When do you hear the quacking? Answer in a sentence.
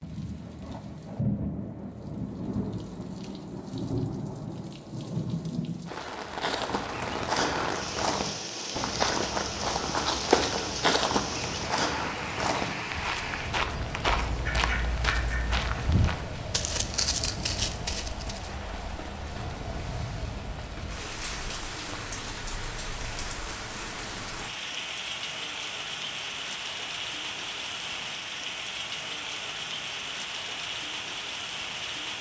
The quacking can be heard from 14.4 to 15.9 s.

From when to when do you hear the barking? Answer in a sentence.
You can't hear the barking here.